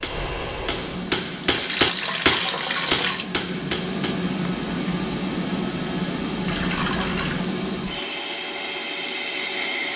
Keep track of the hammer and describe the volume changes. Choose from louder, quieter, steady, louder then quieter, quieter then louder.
louder then quieter.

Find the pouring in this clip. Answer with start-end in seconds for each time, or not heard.
1.4-3.2, 6.5-7.5.